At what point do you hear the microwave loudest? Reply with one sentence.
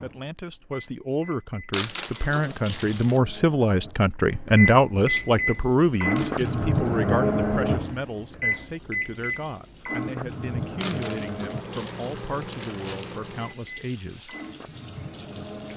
The loudest moment of the microwave is at 7 seconds.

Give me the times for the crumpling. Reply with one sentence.
The crumpling can be heard from 1.7 to 3.2 s, from 6.2 to 7.0 s and from 10.8 to 13.2 s.